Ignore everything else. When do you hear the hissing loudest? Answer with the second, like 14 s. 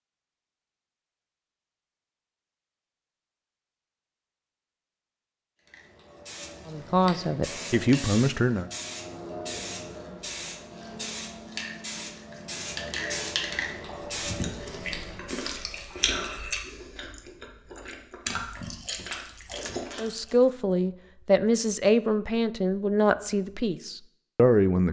13 s.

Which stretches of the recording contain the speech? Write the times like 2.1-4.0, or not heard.
6.7-8.7, 19.9-24.8.